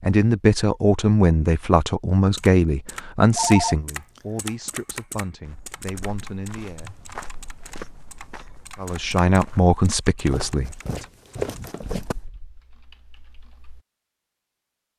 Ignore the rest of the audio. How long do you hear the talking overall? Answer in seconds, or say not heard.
9 s.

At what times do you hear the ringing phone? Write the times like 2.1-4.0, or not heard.
3.4-4.2.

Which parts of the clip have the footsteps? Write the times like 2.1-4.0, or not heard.
5.4-12.2.